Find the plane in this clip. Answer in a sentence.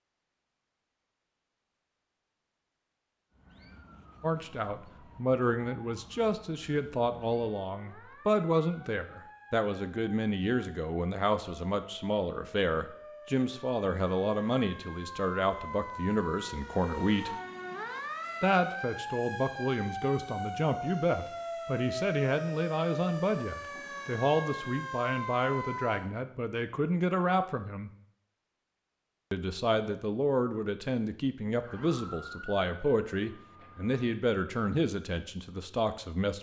You can't hear the plane here.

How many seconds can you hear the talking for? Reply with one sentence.
The talking can be heard for 30 seconds in total.